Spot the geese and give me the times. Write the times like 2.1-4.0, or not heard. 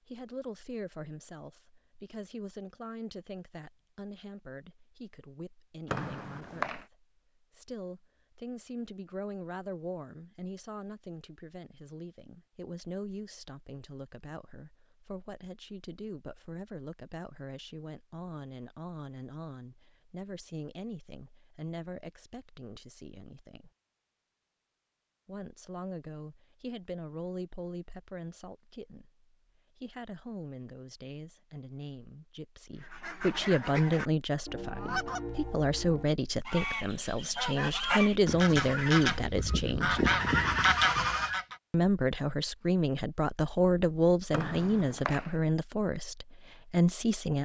32.8-41.5.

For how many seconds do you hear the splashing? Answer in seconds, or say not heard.
not heard.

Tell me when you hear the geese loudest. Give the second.
41 s.